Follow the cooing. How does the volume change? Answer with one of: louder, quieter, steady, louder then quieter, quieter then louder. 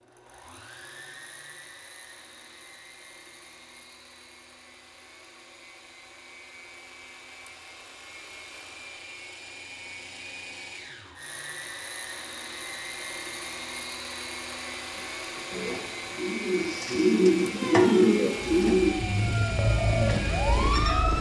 louder then quieter.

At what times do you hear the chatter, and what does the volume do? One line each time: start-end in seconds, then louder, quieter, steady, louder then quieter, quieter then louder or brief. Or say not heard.
not heard.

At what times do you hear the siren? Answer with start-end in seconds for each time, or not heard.
17.6-21.1.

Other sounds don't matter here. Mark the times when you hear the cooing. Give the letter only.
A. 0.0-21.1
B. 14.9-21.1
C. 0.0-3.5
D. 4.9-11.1
B.